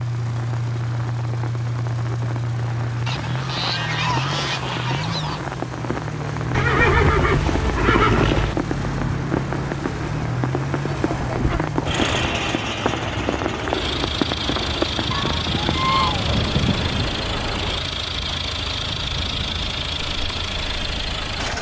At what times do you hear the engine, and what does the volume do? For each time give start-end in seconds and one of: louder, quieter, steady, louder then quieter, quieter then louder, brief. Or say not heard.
0.0-21.5 steady.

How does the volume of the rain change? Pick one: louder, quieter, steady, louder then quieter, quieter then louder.
louder then quieter.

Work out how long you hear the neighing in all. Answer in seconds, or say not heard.
4 s.